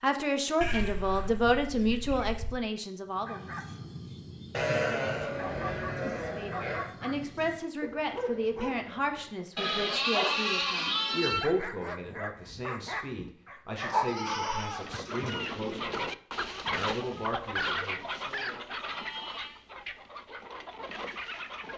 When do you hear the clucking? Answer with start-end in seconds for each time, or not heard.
14.6-21.7.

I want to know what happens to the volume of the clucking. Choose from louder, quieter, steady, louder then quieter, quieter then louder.
quieter.